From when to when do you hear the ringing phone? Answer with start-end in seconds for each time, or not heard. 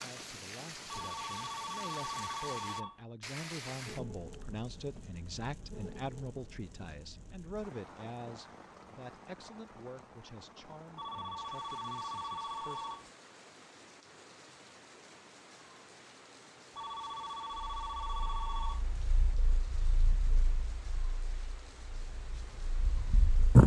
0.8-3.0, 10.9-13.1, 16.8-18.9.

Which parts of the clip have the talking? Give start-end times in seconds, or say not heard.
0.0-12.9.